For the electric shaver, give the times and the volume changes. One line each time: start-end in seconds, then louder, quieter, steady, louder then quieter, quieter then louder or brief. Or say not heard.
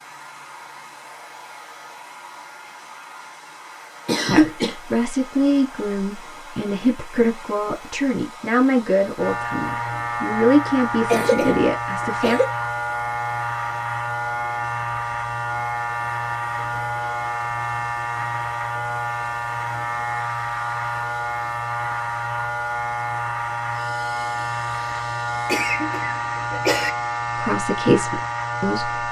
9.2-29.0 steady.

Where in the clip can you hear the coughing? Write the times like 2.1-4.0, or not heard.
4.0-4.8, 11.1-12.5, 25.4-26.9.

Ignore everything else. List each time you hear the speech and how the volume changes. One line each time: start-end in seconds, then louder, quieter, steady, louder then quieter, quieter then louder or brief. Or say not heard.
4.2-12.4 steady
27.4-29.0 brief.